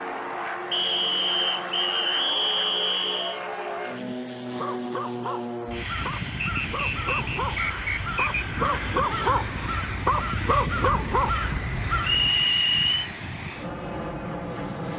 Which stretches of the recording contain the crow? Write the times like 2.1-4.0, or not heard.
5.8-12.4.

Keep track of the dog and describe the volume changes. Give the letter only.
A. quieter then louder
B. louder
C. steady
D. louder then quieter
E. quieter
B.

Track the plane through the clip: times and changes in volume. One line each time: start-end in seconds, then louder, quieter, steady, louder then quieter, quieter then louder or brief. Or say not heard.
0.0-14.9 steady.